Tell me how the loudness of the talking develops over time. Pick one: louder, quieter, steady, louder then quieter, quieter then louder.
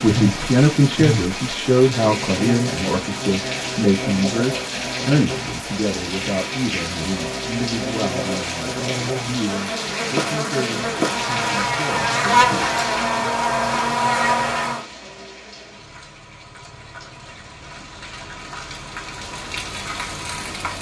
quieter.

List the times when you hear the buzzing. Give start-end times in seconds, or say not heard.
0.0-14.8.